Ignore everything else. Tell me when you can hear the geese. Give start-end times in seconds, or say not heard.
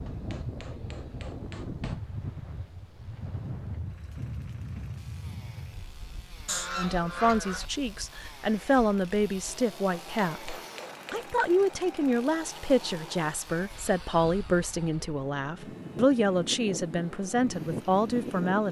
6.5-7.7.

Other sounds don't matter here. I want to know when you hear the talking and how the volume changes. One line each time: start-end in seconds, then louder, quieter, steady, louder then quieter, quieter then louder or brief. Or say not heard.
6.8-18.6 steady.